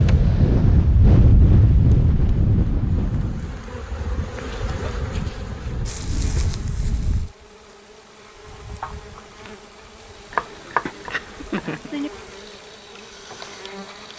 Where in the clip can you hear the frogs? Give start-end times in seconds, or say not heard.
not heard.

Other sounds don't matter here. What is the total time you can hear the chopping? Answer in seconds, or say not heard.
2 s.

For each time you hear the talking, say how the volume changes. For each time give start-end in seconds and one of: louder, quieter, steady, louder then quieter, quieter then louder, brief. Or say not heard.
not heard.